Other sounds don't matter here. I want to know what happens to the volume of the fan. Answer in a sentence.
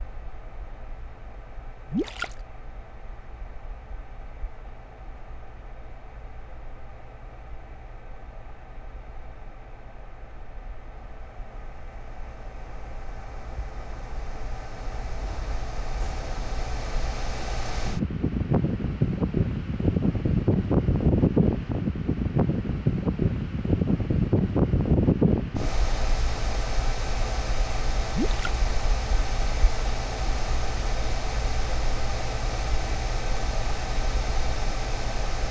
The volume of the fan goes up, then down.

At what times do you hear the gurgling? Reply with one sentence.
You can hear the gurgling from 1.9 to 2.4 s and from 28.1 to 28.6 s.